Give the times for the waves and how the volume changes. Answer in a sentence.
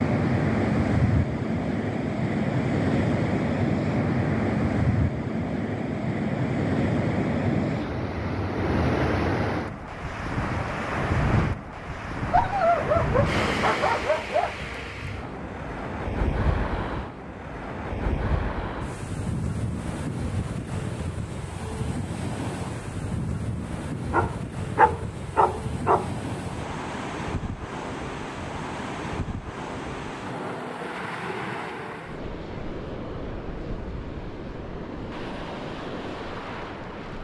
You can hear the waves from 0.0 to 37.1 s, getting quieter.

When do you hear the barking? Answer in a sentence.
You can hear the barking from 12.3 to 14.6 s and from 24.1 to 26.1 s.